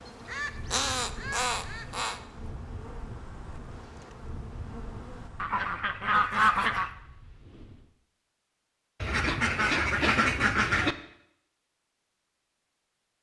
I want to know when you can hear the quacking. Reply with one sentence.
The quacking can be heard from 0.2 to 2.2 s, from 5.4 to 6.9 s and from 9.0 to 10.9 s.